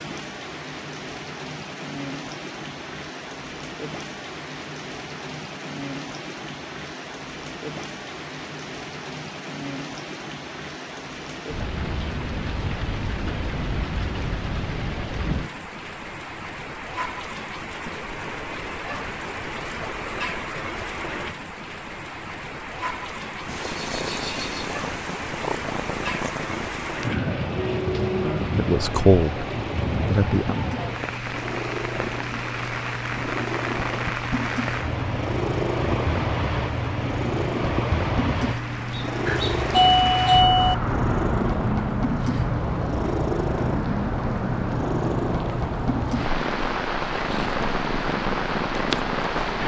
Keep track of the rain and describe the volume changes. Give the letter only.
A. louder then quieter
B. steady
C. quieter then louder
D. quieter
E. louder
E.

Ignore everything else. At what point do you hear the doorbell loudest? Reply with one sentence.
The volume of the doorbell peaks at 40 seconds.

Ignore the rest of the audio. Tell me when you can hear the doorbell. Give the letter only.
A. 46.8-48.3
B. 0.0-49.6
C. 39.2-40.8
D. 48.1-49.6
C.